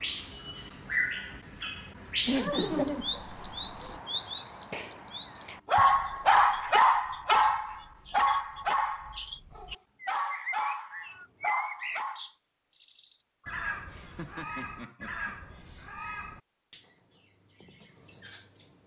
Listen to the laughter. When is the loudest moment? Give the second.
3 s.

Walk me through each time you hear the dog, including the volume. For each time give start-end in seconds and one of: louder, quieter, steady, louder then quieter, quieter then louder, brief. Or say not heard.
5.7-12.2 quieter.